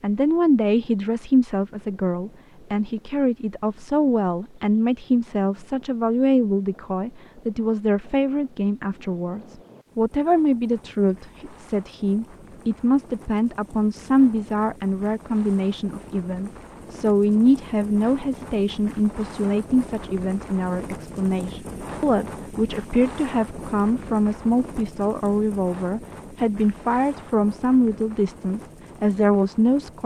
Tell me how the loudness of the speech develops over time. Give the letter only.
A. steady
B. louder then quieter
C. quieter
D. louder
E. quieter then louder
A.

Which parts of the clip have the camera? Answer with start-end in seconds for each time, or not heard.
not heard.